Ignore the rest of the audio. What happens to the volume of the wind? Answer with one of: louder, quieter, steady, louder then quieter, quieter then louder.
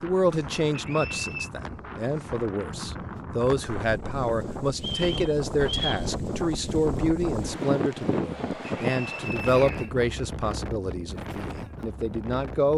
louder then quieter.